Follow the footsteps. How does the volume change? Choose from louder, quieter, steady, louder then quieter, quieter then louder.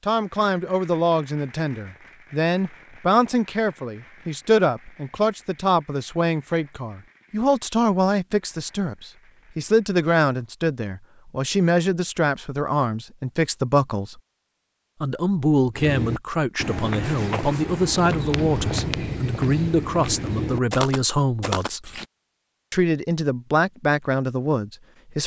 steady.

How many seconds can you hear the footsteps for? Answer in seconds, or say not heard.
6 s.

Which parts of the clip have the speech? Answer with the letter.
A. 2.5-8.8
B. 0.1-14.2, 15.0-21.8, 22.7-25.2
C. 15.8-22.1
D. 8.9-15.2
B.